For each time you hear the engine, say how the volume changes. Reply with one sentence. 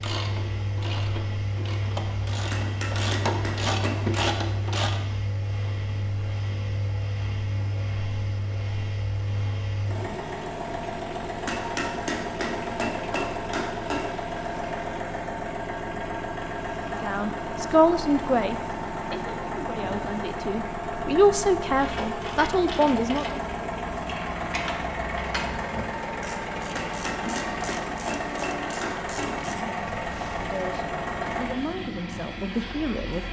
You can hear the engine from 0.0 to 33.2 s, at a steady volume.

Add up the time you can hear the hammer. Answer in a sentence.
You can hear the hammer for 7 seconds altogether.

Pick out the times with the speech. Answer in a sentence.
The speech can be heard from 16.9 to 23.4 s and from 30.4 to 33.2 s.